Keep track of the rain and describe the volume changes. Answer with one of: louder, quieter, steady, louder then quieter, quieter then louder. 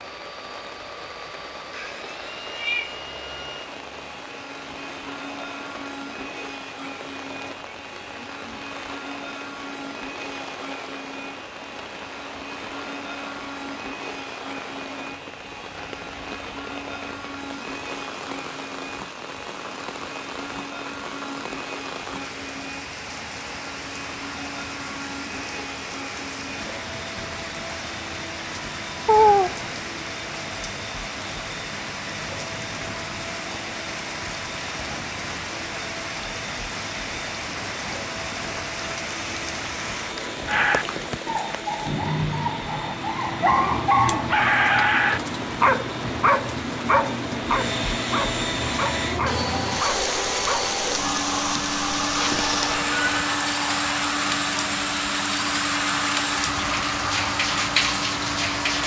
louder.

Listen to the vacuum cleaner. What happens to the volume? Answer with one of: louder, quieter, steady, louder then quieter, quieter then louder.
louder.